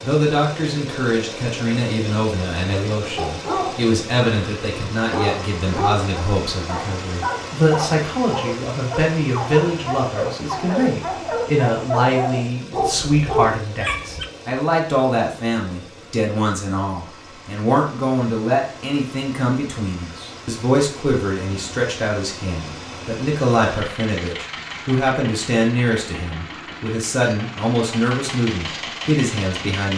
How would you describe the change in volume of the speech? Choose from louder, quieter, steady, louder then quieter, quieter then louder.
steady.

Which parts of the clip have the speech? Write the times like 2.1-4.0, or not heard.
0.0-29.9.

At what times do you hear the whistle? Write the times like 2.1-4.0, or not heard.
not heard.